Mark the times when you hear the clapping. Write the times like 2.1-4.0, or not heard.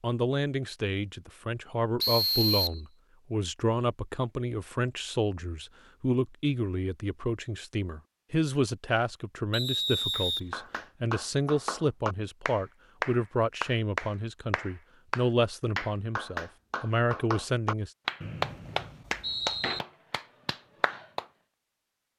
10.1-21.2.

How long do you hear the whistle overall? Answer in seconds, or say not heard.
3 s.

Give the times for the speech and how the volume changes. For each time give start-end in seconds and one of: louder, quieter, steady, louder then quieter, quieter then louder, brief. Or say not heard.
0.0-17.9 steady.